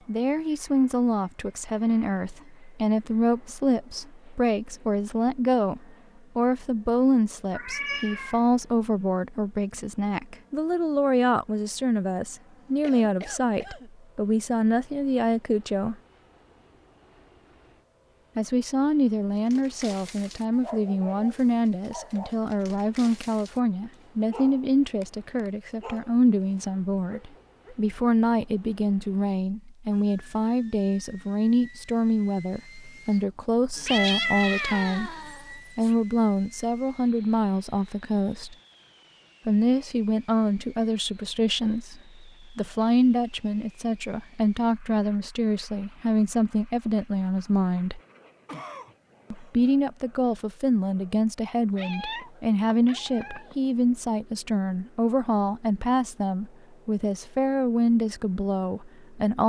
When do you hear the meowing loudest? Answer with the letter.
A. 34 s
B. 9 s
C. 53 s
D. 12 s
A.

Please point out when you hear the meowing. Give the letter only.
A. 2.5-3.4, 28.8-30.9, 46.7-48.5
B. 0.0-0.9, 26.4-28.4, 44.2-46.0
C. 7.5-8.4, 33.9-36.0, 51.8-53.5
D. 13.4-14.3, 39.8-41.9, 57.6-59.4
C.